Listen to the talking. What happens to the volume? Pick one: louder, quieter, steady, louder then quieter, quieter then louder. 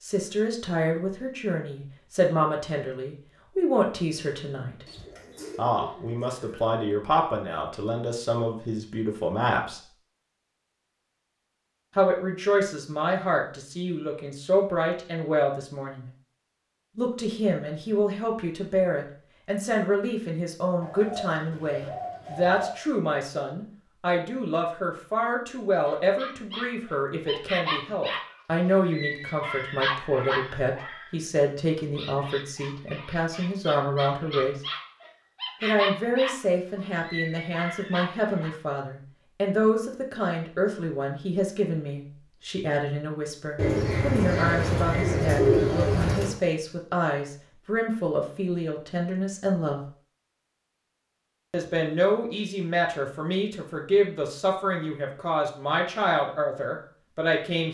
steady.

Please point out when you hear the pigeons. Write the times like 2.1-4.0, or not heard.
4.8-6.7, 20.8-22.8, 43.5-46.4.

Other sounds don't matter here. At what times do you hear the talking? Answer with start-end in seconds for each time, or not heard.
0.0-4.8, 5.5-9.8, 11.9-16.1, 16.9-34.5, 35.6-49.9, 51.5-57.6.